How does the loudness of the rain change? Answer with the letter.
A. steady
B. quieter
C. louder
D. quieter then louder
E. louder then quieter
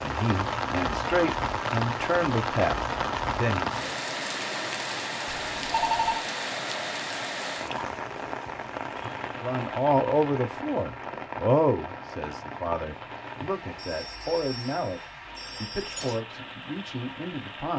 B.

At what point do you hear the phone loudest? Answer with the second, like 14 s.
6 s.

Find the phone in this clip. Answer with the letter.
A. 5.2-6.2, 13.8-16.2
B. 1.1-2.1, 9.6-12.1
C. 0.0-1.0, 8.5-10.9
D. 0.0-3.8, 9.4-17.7
A.